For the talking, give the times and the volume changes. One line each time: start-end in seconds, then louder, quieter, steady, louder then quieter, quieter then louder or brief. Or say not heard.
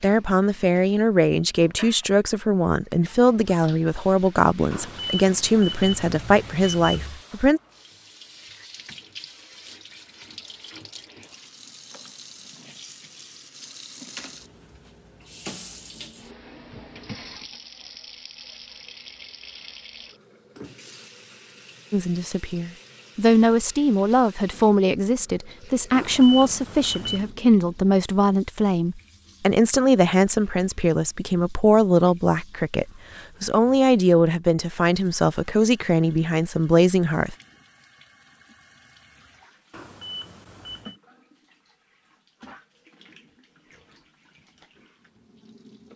0.0-7.6 steady
21.9-37.4 steady.